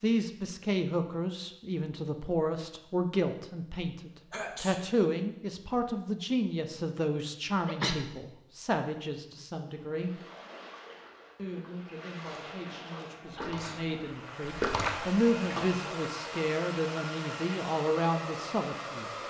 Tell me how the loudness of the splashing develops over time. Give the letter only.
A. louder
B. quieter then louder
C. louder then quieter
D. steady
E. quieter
A.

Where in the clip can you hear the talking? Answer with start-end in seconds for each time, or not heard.
0.0-10.2, 11.3-19.1.